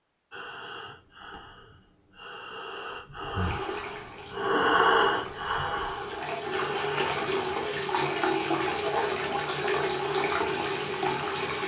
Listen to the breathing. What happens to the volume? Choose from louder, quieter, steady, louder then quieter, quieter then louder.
louder then quieter.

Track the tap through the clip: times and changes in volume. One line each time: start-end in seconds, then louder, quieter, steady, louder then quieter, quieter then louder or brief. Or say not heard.
3.4-11.6 louder.